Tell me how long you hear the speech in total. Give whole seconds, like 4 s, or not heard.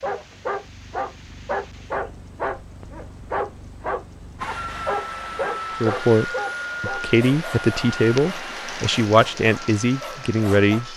5 s.